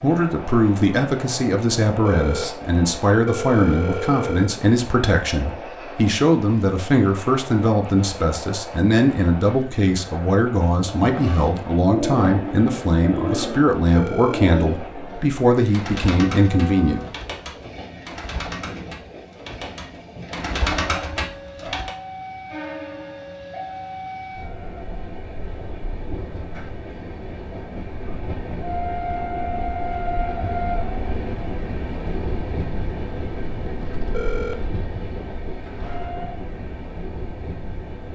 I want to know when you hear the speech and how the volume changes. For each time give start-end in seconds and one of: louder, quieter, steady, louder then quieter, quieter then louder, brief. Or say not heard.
0.0-17.0 steady.